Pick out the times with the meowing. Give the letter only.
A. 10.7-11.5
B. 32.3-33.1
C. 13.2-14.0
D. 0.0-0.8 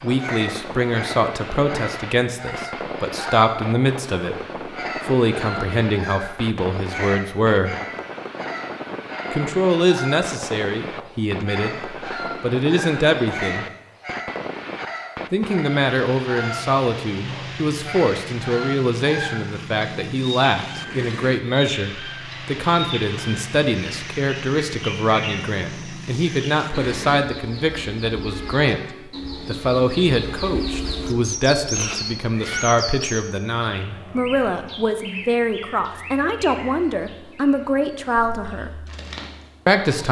B.